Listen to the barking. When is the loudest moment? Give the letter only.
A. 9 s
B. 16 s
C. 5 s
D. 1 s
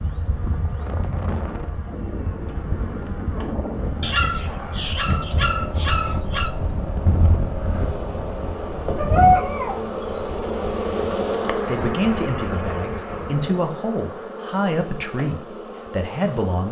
A.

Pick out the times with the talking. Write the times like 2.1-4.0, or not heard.
11.7-16.6.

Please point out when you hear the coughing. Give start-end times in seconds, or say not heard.
not heard.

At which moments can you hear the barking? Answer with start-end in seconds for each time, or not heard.
4.0-6.5, 8.9-9.8.